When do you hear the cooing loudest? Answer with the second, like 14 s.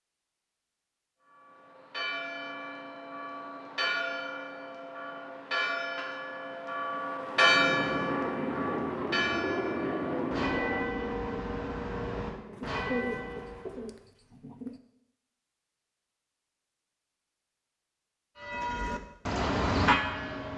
13 s.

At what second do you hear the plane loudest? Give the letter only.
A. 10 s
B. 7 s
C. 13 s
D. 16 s
A.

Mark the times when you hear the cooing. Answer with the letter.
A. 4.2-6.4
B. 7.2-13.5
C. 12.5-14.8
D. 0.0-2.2
C.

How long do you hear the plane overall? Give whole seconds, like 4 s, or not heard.
6 s.